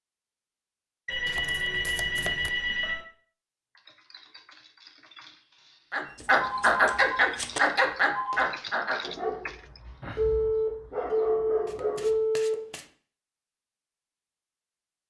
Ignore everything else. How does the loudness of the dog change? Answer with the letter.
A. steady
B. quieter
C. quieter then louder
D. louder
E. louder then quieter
C.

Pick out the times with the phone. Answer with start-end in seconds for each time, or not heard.
1.1-3.0, 6.3-8.4, 10.2-12.6.